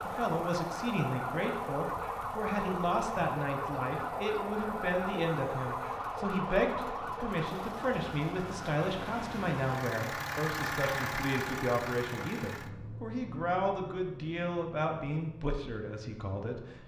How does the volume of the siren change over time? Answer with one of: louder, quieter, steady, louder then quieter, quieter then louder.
steady.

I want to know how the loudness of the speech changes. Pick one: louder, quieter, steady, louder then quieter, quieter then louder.
steady.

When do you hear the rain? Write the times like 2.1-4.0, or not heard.
not heard.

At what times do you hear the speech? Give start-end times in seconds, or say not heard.
0.0-16.8.